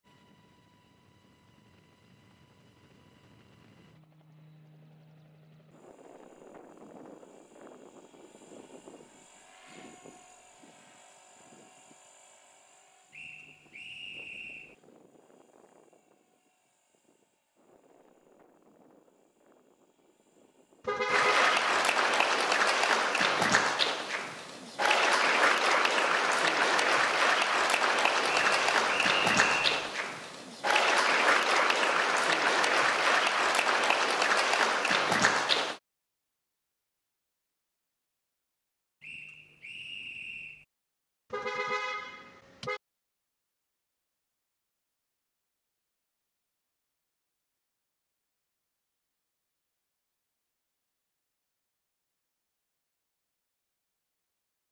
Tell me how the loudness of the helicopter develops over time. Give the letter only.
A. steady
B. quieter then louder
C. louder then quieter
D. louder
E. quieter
C.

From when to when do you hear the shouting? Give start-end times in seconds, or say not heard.
not heard.